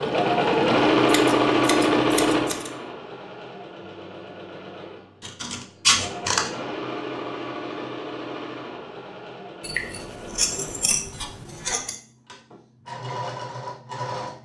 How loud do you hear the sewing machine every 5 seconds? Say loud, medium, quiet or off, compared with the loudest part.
loud, quiet, quiet.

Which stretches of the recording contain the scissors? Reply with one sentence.
The scissors can be heard from 1.1 to 2.7 s, from 5.2 to 6.5 s and from 9.6 to 11.9 s.